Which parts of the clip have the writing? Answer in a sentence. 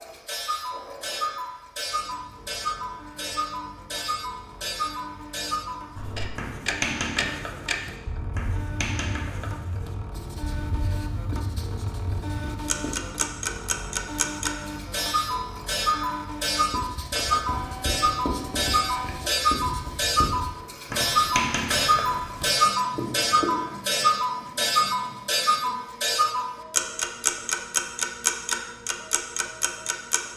The writing can be heard from 6.0 to 13.0 s and from 16.6 to 23.5 s.